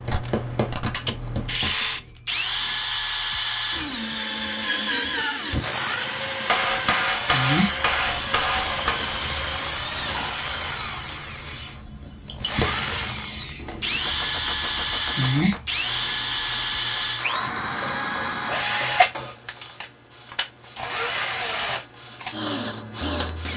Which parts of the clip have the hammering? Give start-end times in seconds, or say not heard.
0.1-1.7, 6.5-9.0, 13.6-15.6, 17.8-19.4.